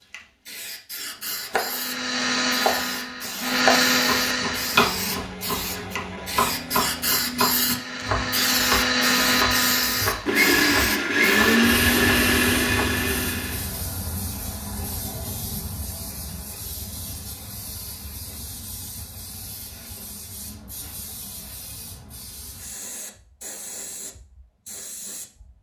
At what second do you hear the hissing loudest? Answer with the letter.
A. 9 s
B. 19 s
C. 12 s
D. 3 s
A.